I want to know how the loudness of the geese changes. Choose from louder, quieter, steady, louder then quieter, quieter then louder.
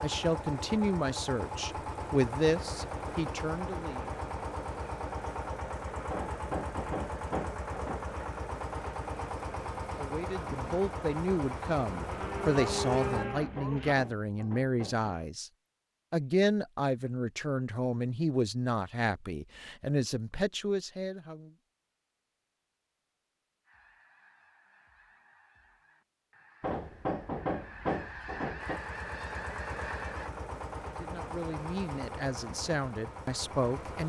louder.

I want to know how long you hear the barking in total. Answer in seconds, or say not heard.
not heard.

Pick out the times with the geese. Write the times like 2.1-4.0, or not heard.
23.6-30.3.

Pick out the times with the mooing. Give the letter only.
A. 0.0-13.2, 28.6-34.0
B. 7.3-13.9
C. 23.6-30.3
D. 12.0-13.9
D.